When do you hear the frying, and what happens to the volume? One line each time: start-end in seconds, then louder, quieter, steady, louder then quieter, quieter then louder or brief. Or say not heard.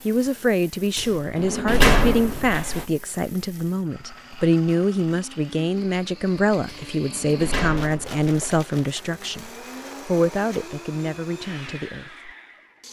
not heard.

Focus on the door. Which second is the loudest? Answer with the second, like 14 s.
2 s.